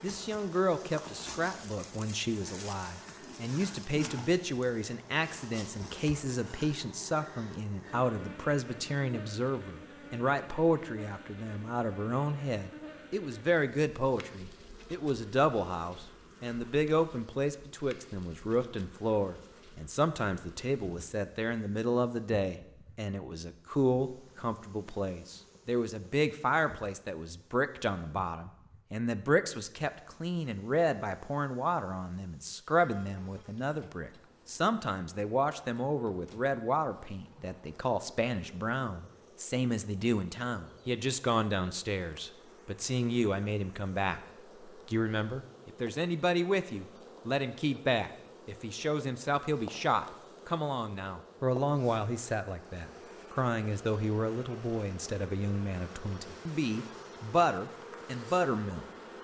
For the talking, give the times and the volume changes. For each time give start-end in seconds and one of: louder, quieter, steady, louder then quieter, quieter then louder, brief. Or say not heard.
0.0-58.9 steady.